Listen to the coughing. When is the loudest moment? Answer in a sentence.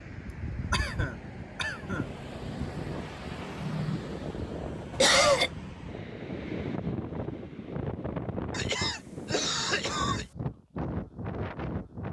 The volume of the coughing peaks at 5 seconds.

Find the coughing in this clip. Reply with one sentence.
You can hear the coughing from 0.7 to 2.0 s, from 4.9 to 5.5 s and from 8.5 to 10.2 s.